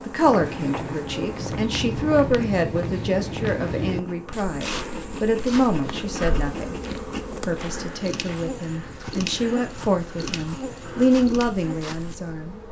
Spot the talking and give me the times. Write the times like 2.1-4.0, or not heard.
0.0-6.8, 7.4-12.6.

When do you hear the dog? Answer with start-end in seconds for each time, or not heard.
not heard.